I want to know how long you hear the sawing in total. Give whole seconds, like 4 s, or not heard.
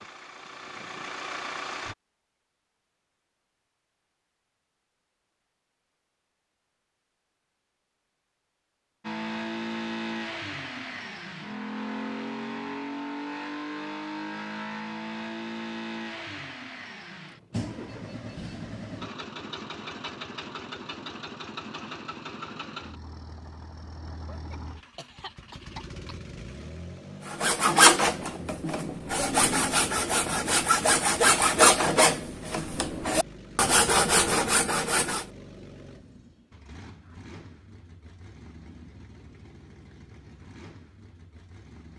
8 s.